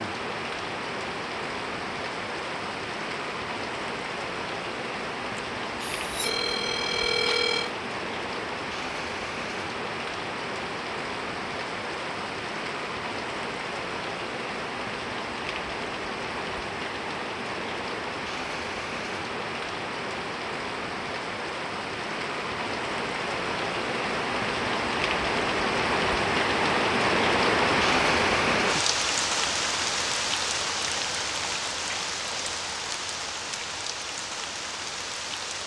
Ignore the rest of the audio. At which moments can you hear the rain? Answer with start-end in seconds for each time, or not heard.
0.0-35.6.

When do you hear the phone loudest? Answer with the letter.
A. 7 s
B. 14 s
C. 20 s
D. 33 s
A.